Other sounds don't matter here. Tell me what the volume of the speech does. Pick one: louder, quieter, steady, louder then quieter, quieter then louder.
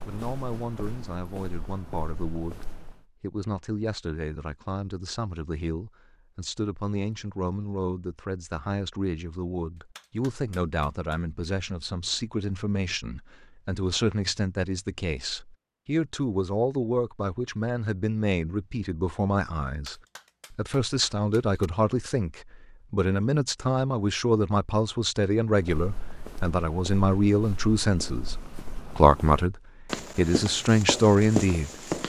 louder.